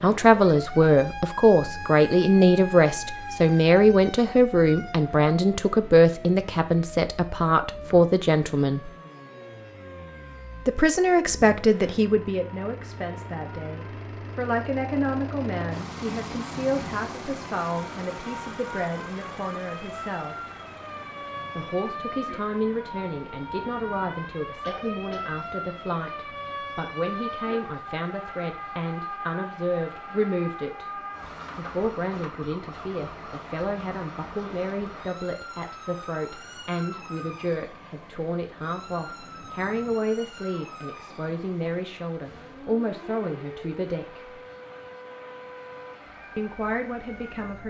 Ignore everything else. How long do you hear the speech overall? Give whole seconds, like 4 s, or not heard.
43 s.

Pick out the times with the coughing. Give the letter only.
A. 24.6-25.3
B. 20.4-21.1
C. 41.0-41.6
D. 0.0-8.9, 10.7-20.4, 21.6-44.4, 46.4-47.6
A.